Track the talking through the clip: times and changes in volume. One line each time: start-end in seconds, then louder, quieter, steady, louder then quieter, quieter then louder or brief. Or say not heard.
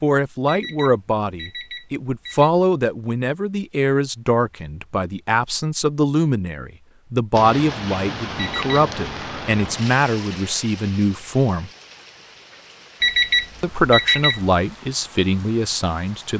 0.0-11.7 steady
13.6-16.3 brief.